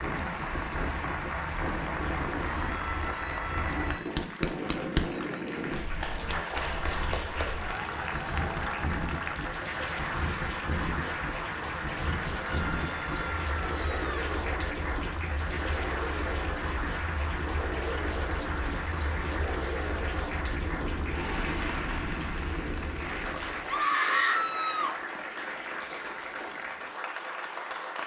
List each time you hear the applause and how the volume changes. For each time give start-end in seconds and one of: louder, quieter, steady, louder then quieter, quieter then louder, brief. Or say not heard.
0.0-28.0 steady.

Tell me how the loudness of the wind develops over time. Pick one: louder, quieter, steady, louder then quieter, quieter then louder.
steady.